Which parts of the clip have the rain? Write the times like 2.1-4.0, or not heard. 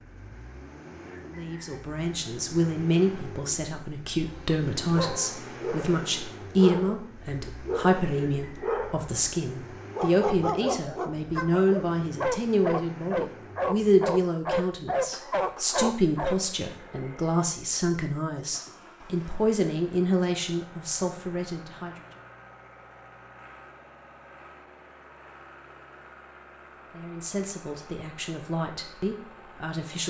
not heard.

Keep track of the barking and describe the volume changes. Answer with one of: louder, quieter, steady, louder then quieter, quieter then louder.
louder.